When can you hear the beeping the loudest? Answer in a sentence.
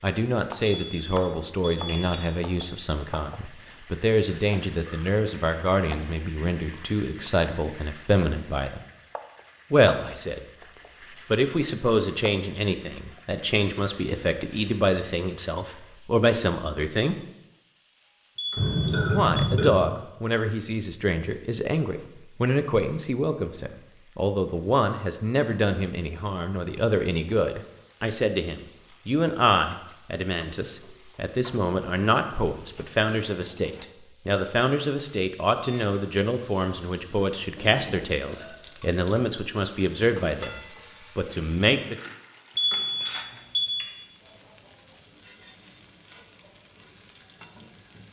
The loudest moment of the beeping is at 43 seconds.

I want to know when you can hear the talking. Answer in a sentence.
You can hear the talking from 0.0 to 8.8 s, from 9.7 to 10.4 s, from 11.2 to 17.1 s and from 19.1 to 42.0 s.